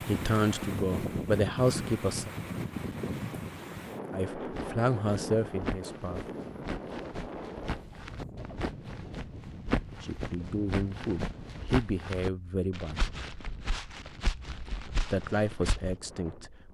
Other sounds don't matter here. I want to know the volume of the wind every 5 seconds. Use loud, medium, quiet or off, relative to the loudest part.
loud, medium, quiet, quiet.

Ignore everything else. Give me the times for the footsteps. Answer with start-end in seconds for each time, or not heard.
4.4-15.9.